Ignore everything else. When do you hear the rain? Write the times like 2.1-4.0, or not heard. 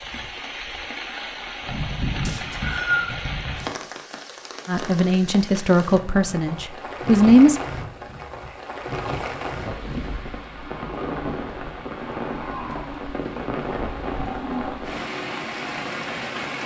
0.0-16.6.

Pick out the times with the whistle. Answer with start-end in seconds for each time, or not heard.
2.2-3.1.